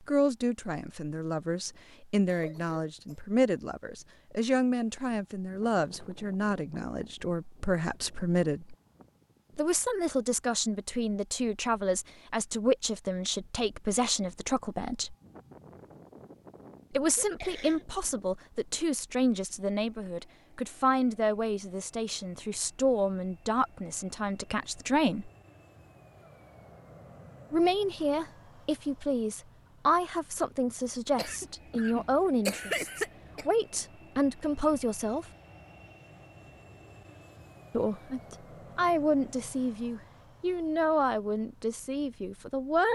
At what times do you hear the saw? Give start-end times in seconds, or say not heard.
not heard.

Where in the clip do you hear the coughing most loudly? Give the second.
33 s.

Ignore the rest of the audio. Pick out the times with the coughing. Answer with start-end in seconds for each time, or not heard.
2.2-3.2, 17.1-17.9, 31.1-33.5.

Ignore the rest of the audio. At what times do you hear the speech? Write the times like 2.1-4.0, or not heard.
0.1-8.8, 9.6-15.2, 16.9-25.3, 27.5-35.2, 37.7-42.9.